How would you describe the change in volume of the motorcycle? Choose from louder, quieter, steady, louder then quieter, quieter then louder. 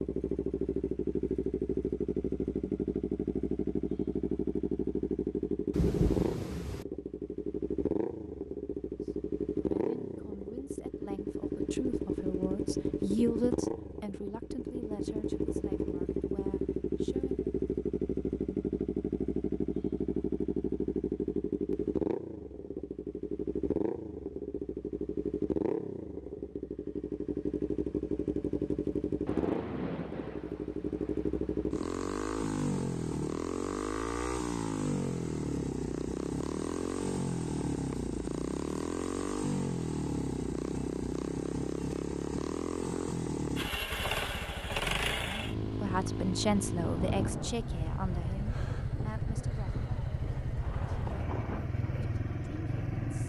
steady.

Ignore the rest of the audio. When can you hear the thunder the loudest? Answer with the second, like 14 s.
6 s.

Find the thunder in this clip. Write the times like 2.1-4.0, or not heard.
5.7-6.8, 29.2-31.8, 46.8-51.6.